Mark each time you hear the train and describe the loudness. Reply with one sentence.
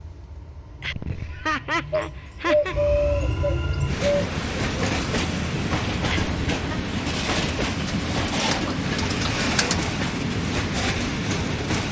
You can hear the train from 0.0 to 11.8 s, getting louder.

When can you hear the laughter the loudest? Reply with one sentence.
The loudest moment of the laughter is at 2 seconds.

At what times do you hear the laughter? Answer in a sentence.
The laughter can be heard from 0.8 to 2.8 s and from 6.0 to 6.5 s.